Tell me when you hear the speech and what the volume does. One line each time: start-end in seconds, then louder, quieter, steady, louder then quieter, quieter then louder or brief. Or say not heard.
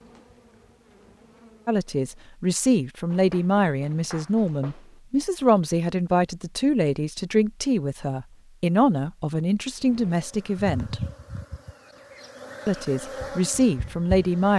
1.6-11.1 steady
12.7-14.5 brief.